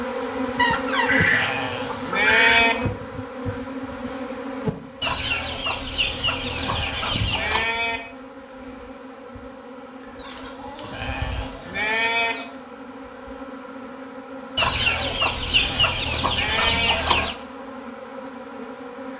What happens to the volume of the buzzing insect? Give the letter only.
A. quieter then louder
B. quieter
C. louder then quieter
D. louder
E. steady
B.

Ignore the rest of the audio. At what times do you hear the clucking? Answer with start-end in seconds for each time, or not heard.
0.6-2.6, 5.0-7.7, 10.2-12.4, 14.6-17.4.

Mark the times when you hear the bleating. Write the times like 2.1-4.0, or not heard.
1.2-2.8, 6.5-8.0, 10.8-12.3, 15.6-16.9.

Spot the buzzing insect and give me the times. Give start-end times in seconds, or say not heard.
0.0-19.1.